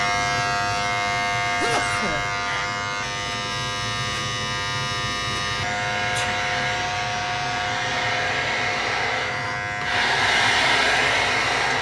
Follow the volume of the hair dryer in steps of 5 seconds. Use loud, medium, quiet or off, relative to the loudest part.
off, medium, loud.